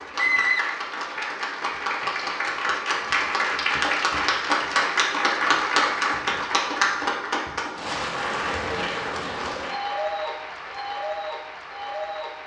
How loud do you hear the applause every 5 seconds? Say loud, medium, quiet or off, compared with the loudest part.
loud, loud, medium.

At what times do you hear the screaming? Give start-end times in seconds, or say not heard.
0.1-1.2.